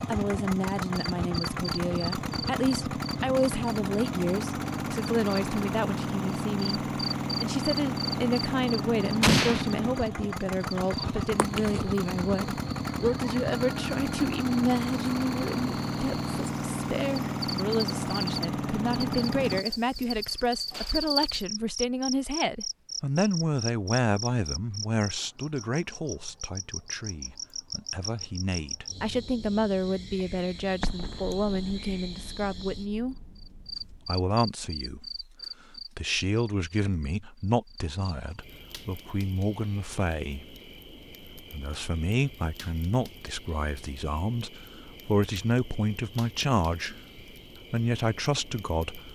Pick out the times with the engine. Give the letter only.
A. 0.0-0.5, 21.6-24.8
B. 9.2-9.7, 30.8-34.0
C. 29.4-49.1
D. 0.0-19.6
D.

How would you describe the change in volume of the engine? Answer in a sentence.
The volume of the engine stays about the same.